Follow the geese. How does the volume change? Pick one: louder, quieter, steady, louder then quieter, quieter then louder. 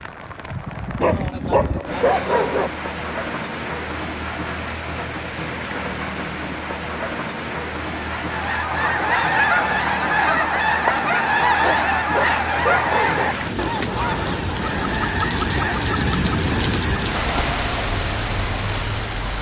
quieter.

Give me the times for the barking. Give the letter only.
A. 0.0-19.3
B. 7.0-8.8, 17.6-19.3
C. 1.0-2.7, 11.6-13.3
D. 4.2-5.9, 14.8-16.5
C.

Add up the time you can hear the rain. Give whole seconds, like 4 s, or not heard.
19 s.